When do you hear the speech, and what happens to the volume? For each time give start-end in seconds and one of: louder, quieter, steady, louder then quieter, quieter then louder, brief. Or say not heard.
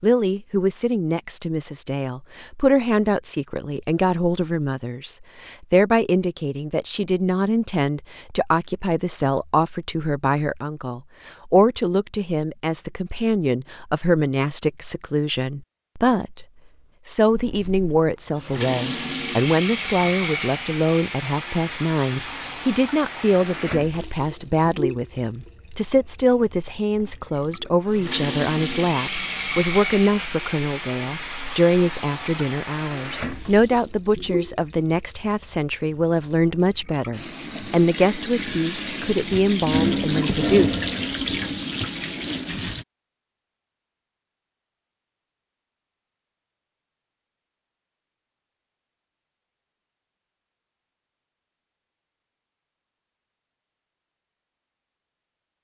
0.0-16.4 steady
17.1-40.7 steady.